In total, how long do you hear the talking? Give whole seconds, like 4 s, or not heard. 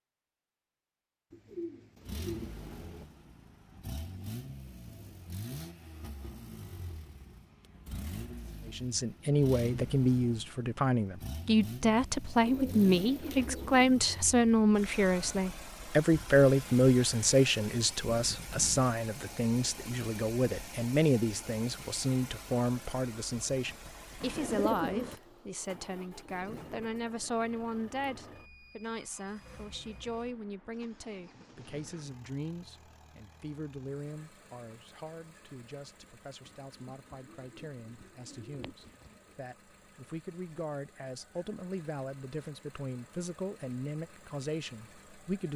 37 s.